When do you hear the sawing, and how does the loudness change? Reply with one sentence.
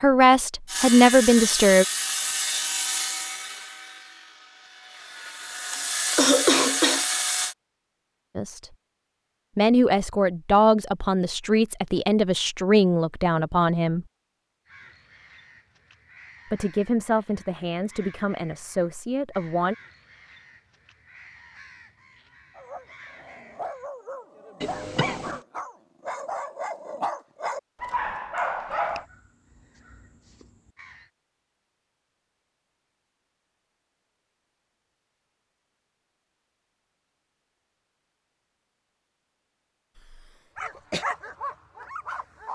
You can hear the sawing from 0.7 to 7.5 s, getting quieter then louder.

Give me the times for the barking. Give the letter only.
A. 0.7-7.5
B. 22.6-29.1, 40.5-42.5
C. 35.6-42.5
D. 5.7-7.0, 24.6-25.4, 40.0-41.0
B.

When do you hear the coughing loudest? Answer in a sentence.
The loudest moment of the coughing is at 6 seconds.